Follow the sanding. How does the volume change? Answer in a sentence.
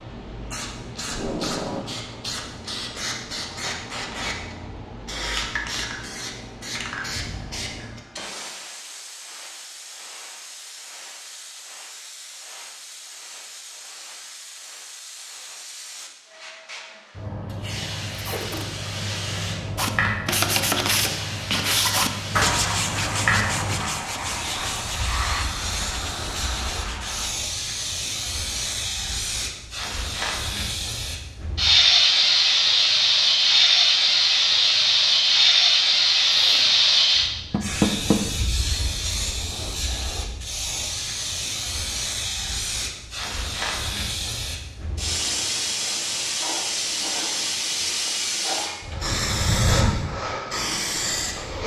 The loudness of the sanding goes down.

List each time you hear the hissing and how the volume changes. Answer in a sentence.
The hissing can be heard from 0.0 to 51.6 s, getting louder then quieter.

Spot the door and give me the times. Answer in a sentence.
The door can be heard from 22.3 to 22.8 s and from 37.5 to 38.2 s.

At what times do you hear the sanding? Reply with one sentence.
You can hear the sanding from 19.8 to 27.3 s.